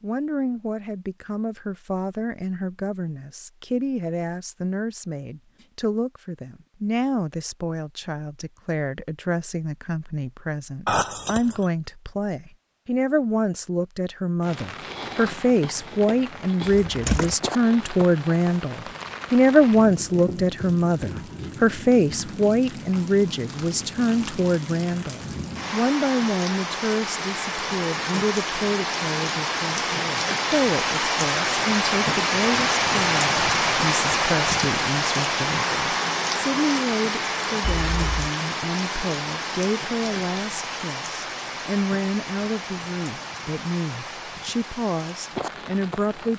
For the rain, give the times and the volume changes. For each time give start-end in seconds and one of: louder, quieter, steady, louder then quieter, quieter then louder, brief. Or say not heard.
14.4-46.3 louder then quieter.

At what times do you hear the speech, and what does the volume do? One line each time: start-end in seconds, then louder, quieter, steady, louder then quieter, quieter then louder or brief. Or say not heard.
0.0-46.3 louder then quieter.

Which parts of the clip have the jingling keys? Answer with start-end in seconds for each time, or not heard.
10.8-11.7, 16.6-17.4, 37.8-38.2.